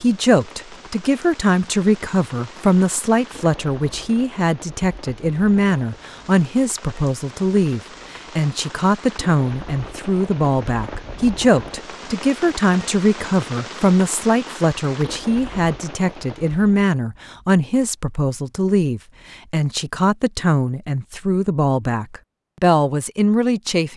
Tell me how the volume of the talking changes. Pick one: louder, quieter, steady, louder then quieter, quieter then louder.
steady.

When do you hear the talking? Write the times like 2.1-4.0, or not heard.
0.0-23.9.